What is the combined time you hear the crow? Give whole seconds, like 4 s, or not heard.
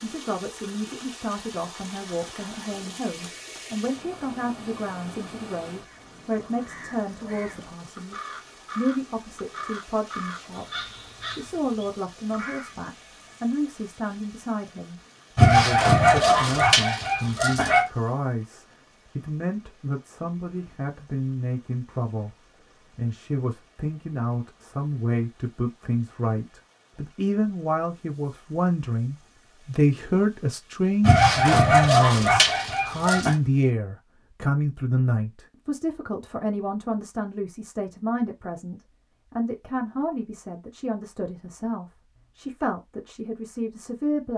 7 s.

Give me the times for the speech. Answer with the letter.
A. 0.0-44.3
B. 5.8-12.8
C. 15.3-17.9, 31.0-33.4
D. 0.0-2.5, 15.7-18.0
A.